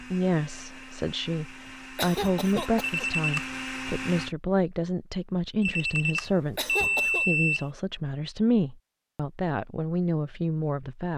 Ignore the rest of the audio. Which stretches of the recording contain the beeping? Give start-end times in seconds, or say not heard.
2.8-3.5, 5.6-7.7.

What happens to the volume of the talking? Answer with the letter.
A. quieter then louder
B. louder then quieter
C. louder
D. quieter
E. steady
E.